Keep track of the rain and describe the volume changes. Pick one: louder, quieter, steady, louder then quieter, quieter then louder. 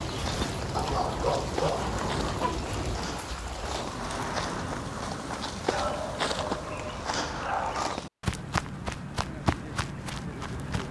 quieter.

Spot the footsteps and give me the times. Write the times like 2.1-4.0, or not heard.
0.1-10.8.